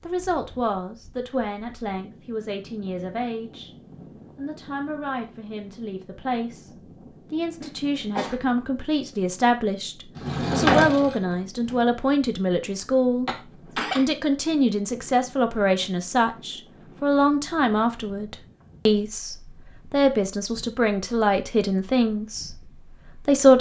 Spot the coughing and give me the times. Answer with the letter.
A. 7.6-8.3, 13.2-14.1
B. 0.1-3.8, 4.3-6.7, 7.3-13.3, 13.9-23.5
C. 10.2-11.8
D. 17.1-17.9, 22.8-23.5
A.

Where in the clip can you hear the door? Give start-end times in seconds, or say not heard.
10.2-11.8.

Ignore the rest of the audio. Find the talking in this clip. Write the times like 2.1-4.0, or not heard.
0.1-3.8, 4.3-6.7, 7.3-13.3, 13.9-23.5.